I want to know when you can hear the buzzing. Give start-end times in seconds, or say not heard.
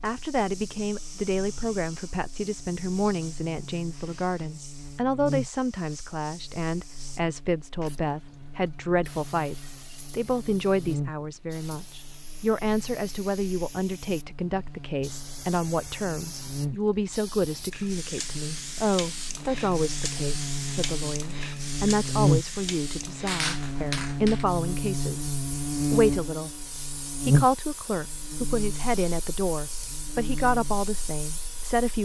0.0-31.8.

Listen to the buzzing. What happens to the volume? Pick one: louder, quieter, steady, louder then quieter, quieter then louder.
louder.